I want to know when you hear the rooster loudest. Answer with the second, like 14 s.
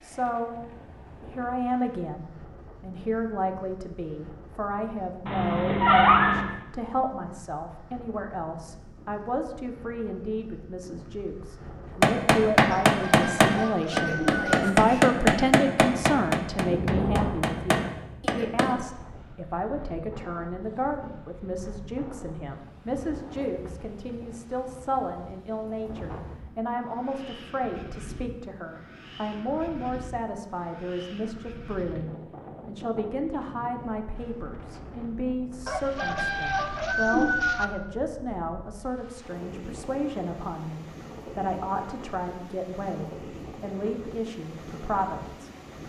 37 s.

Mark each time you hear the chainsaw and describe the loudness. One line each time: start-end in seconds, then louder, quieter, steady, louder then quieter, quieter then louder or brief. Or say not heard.
not heard.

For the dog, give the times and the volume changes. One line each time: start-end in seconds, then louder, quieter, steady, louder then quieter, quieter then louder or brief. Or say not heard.
not heard.